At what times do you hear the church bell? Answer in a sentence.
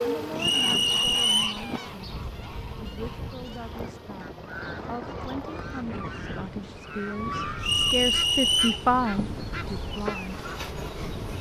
You can't hear the church bell here.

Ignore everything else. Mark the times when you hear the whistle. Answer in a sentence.
You can hear the whistle from 0.3 to 1.6 s and from 7.6 to 8.8 s.